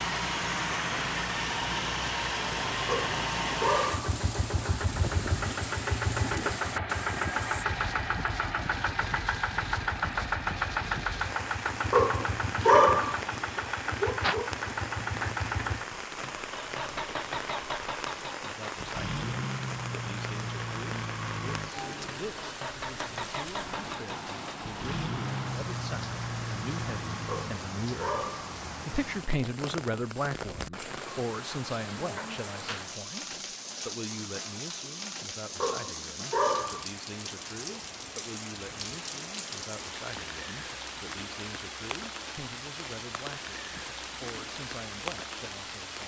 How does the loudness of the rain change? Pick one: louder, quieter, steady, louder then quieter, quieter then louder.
steady.